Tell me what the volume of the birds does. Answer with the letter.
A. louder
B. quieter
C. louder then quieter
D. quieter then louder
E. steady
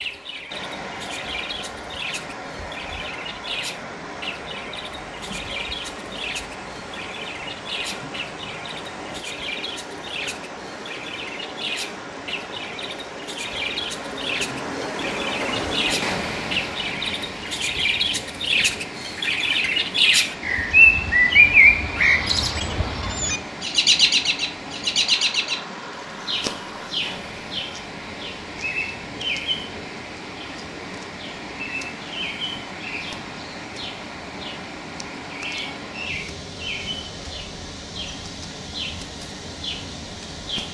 C.